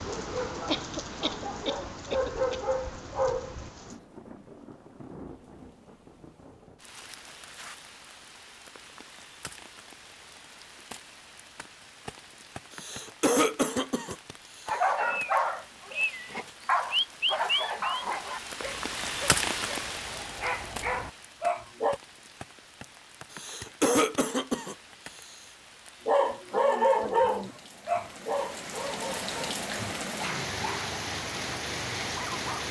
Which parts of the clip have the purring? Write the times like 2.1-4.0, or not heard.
not heard.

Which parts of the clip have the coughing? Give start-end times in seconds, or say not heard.
0.7-2.5, 12.7-14.8, 23.3-25.4.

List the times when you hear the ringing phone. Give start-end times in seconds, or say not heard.
not heard.